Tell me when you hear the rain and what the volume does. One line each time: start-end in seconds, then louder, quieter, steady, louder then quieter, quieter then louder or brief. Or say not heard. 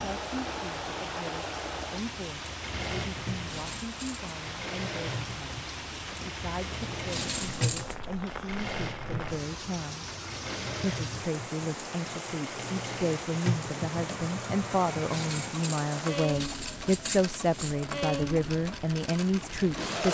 0.0-20.1 steady.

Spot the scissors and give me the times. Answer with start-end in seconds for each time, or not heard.
3.5-4.2, 7.1-8.0, 15.1-17.8.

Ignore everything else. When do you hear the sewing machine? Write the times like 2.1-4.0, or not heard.
0.0-20.1.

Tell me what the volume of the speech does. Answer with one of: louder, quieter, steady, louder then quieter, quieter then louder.
louder.